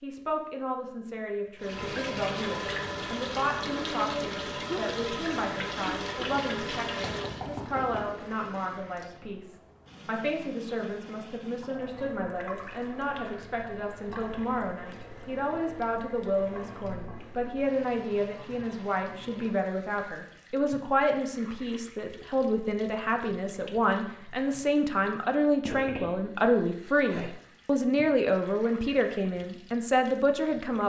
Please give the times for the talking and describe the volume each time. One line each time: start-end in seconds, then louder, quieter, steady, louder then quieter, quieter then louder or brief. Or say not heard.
0.0-30.8 louder.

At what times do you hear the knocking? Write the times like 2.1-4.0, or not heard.
7.0-8.1.